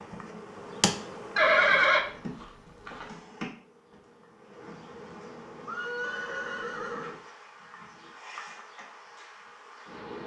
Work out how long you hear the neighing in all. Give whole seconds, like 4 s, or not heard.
3 s.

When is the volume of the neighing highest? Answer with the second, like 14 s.
2 s.